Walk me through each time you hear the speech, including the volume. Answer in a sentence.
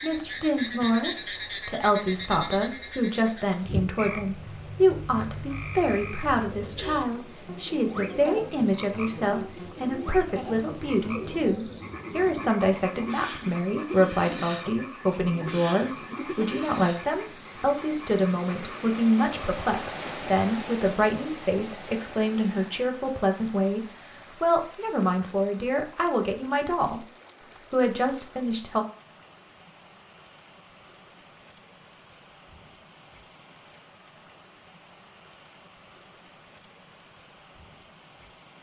The speech can be heard from 0.0 to 27.1 s, at a steady volume; and briefly from 27.7 to 28.9 s.